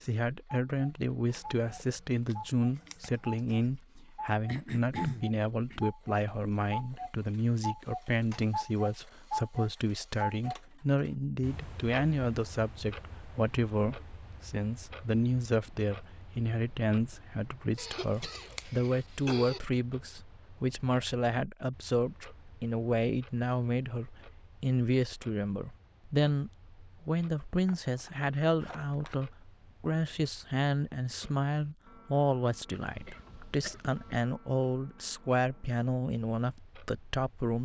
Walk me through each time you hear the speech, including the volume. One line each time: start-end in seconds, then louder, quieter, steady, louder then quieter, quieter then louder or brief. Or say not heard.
0.0-37.5 steady.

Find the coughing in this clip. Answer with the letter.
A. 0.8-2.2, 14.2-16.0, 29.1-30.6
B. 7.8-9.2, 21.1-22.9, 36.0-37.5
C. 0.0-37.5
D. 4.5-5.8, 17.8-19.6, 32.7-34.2
D.